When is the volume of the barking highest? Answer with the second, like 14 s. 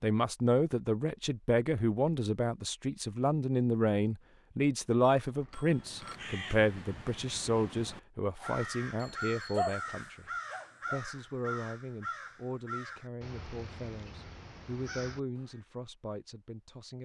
10 s.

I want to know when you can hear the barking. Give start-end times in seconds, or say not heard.
8.4-11.1.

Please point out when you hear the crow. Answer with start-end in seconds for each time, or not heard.
5.6-15.6.